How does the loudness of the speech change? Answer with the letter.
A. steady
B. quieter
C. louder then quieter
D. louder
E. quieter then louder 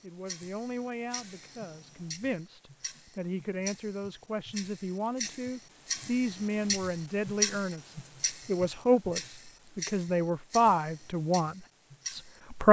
D.